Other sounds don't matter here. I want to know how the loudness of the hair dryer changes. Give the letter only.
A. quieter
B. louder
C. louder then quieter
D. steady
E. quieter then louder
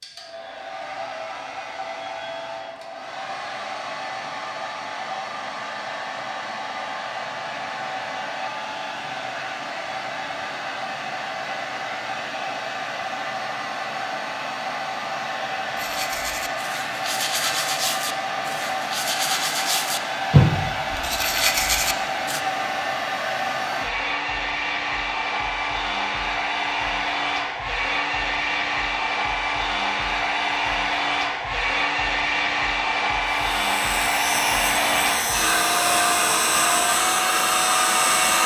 B.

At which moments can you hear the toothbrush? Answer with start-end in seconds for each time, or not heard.
15.8-22.4.